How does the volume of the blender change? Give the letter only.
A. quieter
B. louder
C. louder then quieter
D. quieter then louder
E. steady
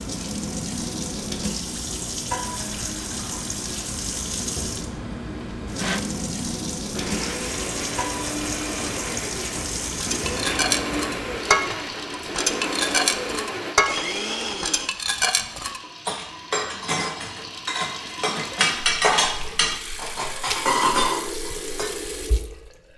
B.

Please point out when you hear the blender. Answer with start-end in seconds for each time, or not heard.
2.4-14.9.